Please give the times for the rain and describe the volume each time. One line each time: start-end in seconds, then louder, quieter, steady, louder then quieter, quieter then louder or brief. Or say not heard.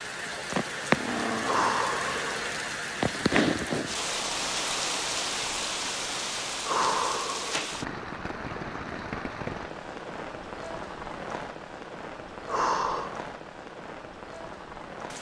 0.0-15.1 quieter.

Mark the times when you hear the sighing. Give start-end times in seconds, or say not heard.
1.4-2.4, 6.7-7.7, 12.4-13.2.